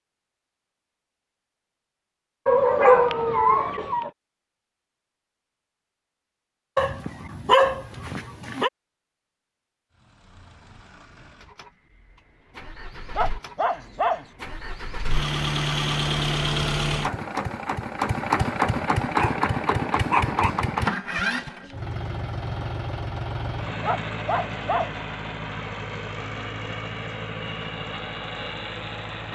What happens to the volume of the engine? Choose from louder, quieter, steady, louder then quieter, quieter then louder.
louder then quieter.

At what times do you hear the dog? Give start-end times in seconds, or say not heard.
2.5-4.1, 6.8-8.7, 12.9-14.3, 19.1-20.6, 23.8-25.0.